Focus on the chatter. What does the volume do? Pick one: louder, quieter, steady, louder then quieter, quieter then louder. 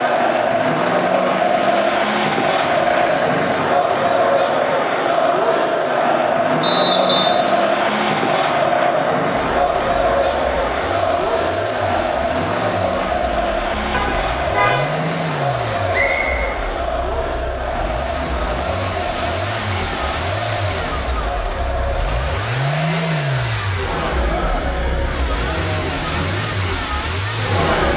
quieter.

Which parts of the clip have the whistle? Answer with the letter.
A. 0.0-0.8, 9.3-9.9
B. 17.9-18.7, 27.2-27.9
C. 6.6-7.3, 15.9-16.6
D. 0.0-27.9
C.